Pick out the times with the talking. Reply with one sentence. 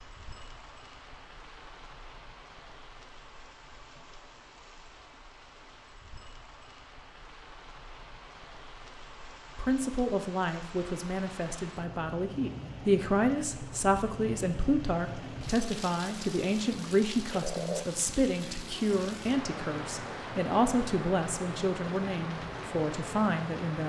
You can hear the talking from 9.6 to 23.8 s.